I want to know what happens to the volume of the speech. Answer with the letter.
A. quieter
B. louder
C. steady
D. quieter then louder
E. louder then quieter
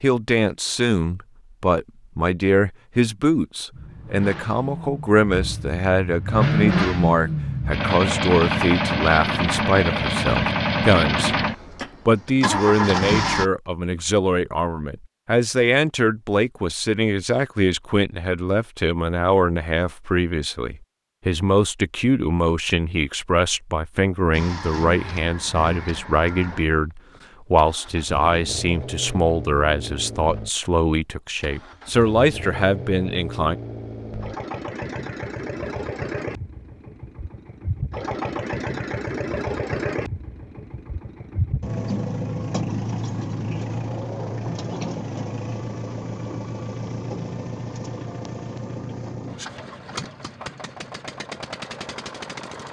C.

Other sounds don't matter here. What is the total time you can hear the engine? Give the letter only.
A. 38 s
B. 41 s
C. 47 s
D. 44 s
A.